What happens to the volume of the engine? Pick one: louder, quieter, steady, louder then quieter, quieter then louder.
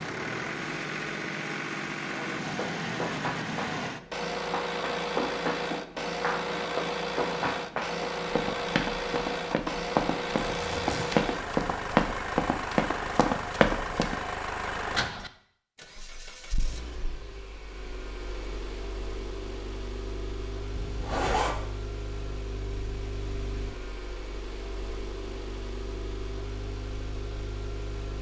quieter.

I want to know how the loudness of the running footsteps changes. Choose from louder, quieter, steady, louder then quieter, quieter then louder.
louder.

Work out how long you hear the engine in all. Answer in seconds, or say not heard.
28 s.